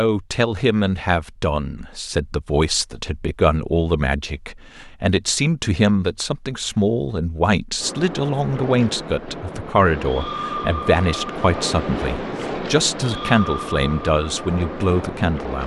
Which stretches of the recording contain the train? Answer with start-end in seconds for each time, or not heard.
7.8-15.6.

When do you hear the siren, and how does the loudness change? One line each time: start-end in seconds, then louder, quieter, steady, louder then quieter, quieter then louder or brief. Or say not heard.
not heard.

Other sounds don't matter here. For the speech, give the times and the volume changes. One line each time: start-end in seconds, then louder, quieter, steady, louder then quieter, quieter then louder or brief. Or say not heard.
0.0-15.6 steady.